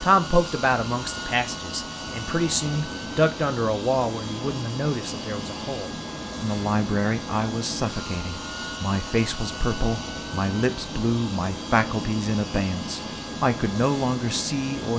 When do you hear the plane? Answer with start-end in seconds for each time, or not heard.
0.0-14.9.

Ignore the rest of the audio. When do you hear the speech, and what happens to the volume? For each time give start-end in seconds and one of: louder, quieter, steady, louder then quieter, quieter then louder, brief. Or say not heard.
0.0-14.9 steady.